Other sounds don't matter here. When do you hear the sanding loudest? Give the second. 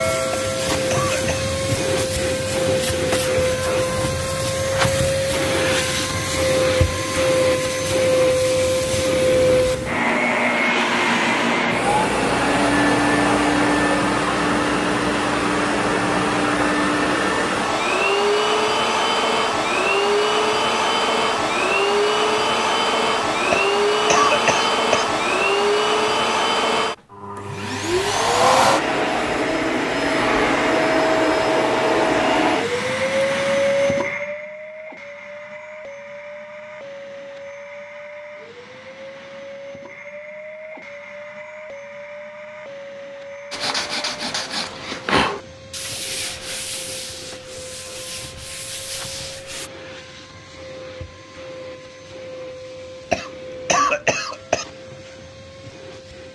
45 s.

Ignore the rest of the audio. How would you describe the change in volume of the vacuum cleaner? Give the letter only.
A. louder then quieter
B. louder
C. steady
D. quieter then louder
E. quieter
E.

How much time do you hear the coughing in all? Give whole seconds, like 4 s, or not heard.
4 s.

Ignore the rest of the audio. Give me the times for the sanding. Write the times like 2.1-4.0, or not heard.
43.5-49.7.